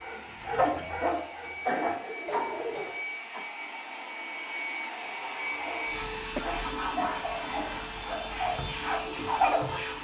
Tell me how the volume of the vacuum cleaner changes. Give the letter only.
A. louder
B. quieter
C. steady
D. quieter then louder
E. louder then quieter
A.